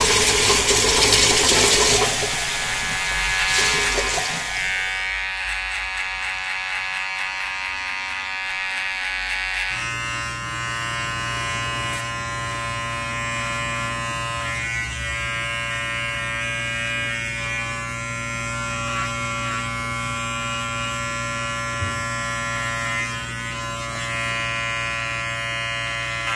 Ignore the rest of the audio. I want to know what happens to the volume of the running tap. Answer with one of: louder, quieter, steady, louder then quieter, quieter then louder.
quieter.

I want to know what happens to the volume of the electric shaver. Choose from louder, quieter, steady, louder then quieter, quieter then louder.
steady.